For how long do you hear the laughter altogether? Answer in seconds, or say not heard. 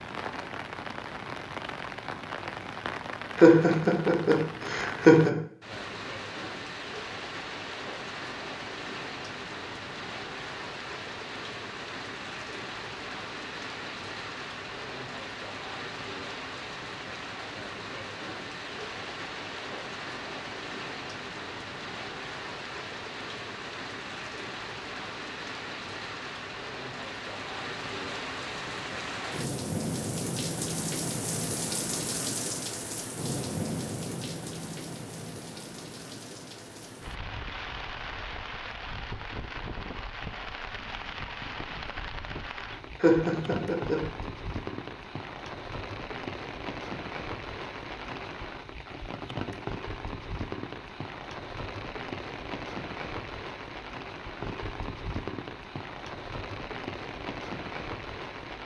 3 s.